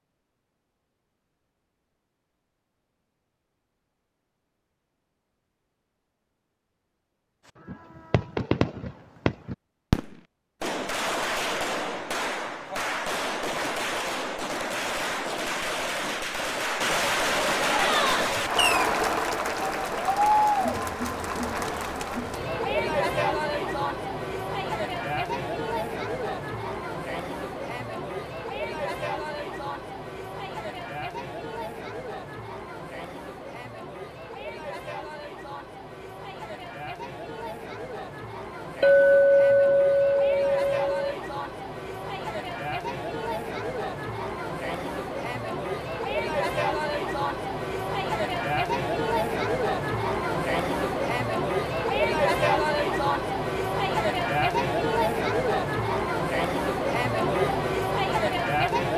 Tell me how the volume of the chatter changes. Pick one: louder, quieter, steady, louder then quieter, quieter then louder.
quieter then louder.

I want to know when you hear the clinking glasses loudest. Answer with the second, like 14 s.
39 s.